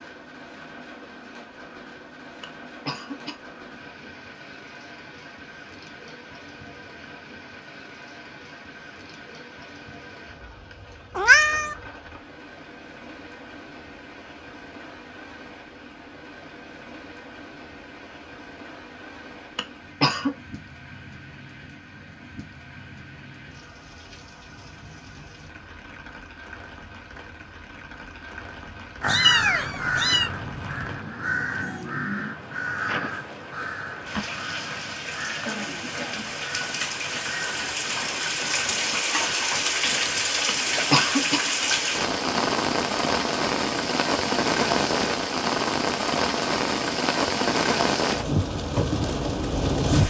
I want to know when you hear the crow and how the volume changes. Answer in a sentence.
You can hear the crow from 29.0 to 38.8 s, getting quieter.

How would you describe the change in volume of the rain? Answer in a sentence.
The loudness of the rain goes up.